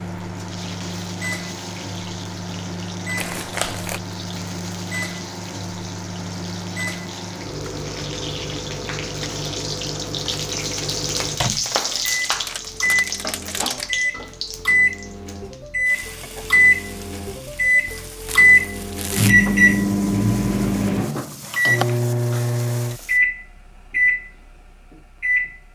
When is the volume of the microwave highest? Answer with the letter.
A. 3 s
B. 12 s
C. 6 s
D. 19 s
D.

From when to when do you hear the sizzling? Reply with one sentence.
The sizzling can be heard from 0.0 to 23.2 s.